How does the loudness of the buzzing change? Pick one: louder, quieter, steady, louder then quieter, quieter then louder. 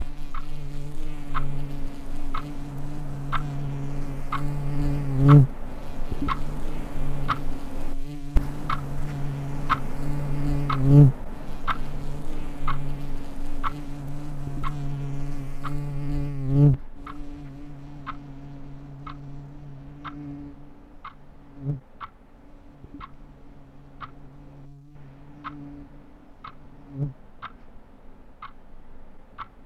quieter.